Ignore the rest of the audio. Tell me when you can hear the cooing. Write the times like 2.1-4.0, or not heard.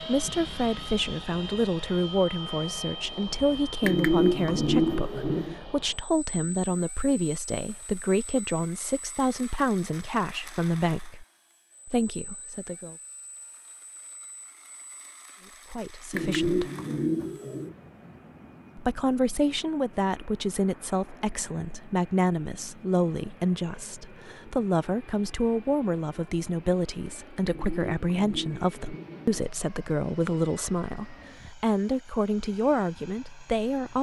3.8-5.5, 16.1-17.8, 27.4-29.4.